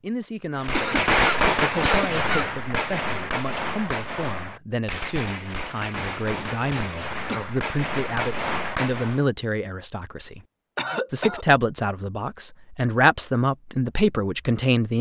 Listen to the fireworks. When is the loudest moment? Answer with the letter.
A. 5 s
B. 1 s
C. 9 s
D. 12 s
B.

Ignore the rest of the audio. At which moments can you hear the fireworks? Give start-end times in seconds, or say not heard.
0.6-9.2.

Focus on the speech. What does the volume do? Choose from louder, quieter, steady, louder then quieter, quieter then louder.
louder.